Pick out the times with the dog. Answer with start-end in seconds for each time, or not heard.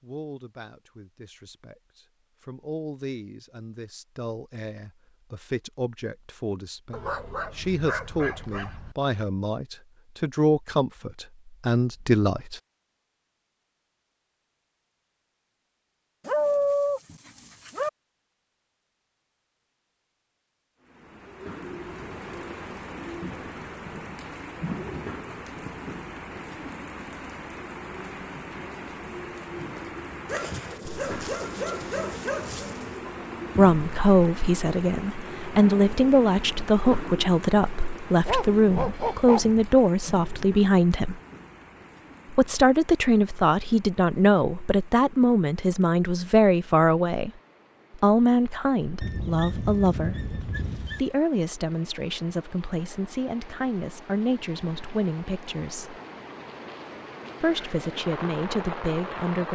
6.9-8.9, 16.2-17.9, 30.2-33.0, 38.2-39.6, 49.0-51.0.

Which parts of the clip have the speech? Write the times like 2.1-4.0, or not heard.
0.0-12.6, 33.5-41.2, 42.3-47.3, 48.0-56.0, 57.4-59.5.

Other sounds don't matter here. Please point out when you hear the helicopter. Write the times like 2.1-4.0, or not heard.
not heard.